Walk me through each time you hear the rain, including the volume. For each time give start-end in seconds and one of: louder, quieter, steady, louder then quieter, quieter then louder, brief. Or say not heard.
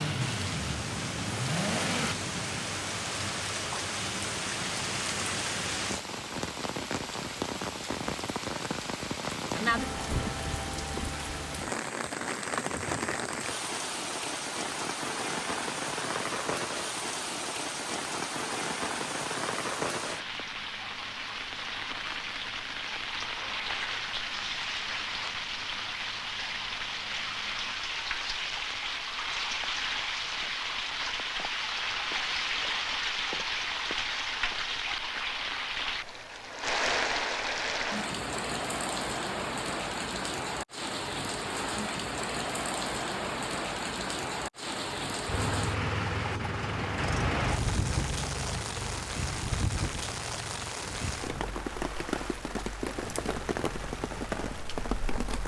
0.0-55.4 steady.